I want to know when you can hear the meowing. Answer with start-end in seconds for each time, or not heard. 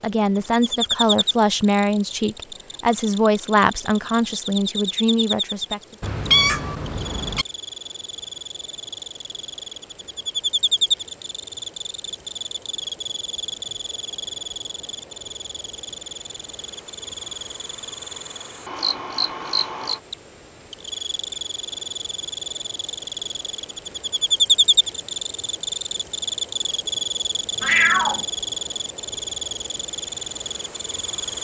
6.0-7.5, 27.6-28.2.